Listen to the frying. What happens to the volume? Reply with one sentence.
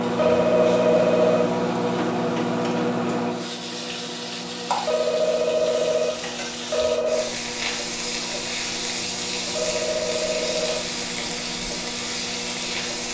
The volume of the frying goes up.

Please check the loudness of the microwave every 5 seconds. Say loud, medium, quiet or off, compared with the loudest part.
loud, medium, medium.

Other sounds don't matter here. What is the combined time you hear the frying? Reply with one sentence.
The frying can be heard for 13 seconds in total.